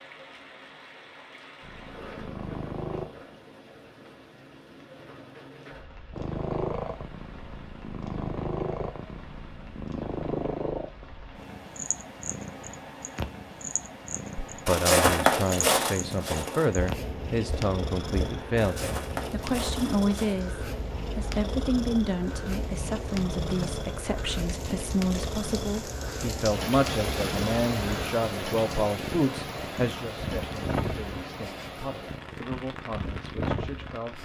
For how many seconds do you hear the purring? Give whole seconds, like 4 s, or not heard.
30 s.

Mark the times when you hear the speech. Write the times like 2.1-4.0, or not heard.
14.7-34.2.